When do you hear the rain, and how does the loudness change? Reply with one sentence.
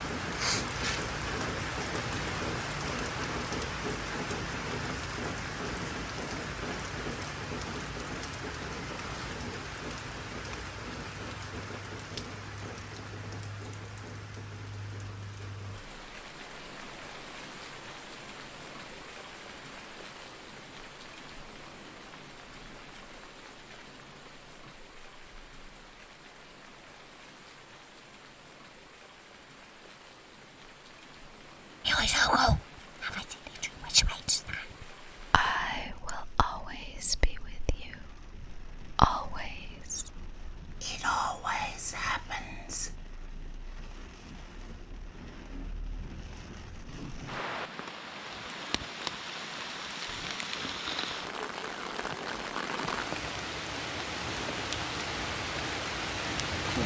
You can hear the rain from 0.0 to 56.8 s, getting quieter then louder.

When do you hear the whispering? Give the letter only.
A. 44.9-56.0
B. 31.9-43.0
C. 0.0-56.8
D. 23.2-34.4
B.